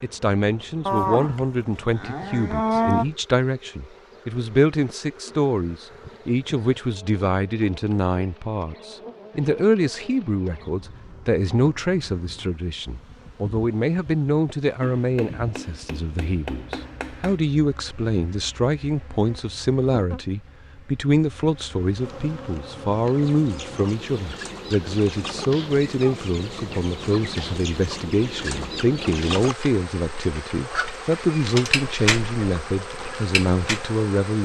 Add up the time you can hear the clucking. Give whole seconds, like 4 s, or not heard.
11 s.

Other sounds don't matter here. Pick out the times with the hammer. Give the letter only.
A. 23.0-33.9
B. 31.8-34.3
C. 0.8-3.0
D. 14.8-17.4
D.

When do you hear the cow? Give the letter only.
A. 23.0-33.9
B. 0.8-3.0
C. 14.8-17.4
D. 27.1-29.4
B.